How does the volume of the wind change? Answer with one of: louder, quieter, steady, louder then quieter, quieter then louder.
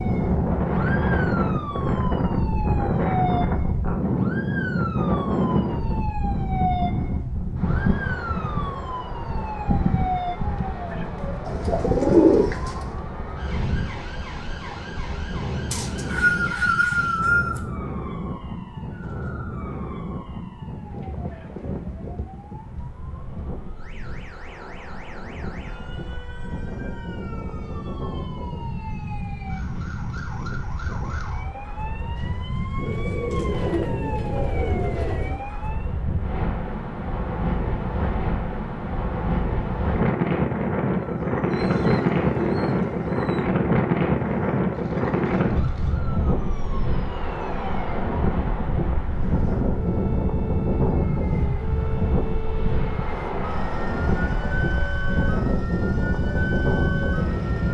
quieter then louder.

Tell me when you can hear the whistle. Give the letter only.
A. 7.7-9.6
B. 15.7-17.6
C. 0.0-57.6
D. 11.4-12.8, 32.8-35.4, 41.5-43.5
B.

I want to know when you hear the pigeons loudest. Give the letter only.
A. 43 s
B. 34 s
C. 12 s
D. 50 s
C.